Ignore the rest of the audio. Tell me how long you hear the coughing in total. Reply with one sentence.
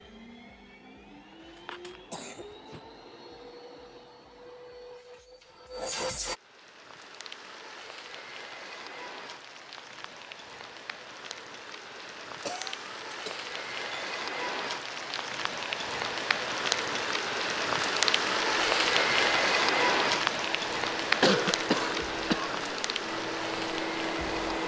You can hear the coughing for 4 seconds altogether.